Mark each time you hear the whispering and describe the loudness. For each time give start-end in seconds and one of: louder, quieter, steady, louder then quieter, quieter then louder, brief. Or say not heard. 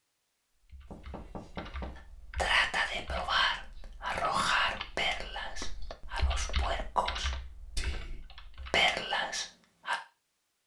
2.4-9.9 quieter then louder.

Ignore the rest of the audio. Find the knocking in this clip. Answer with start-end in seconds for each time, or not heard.
0.9-2.0, 5.6-6.9.